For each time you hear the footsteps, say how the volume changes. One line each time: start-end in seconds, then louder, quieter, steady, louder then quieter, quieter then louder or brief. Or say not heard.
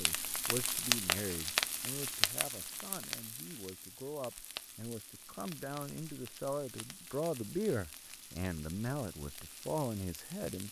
not heard.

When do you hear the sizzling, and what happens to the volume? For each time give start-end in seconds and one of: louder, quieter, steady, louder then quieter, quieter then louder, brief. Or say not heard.
0.0-10.6 quieter.